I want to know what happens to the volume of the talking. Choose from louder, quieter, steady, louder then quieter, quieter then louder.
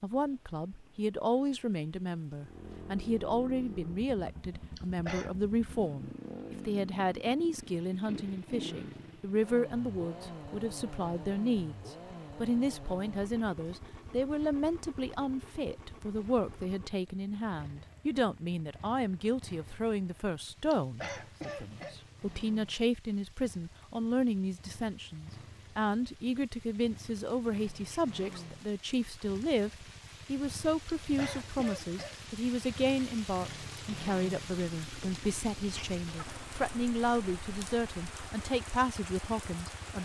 steady.